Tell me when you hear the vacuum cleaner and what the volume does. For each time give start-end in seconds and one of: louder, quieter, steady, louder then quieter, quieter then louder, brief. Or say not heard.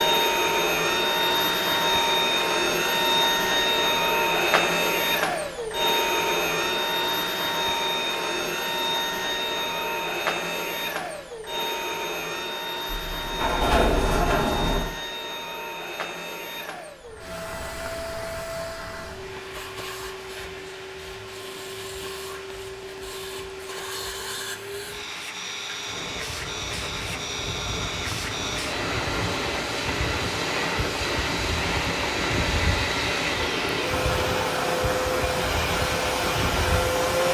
0.0-37.3 quieter then louder.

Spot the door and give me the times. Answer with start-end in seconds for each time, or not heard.
12.8-14.9.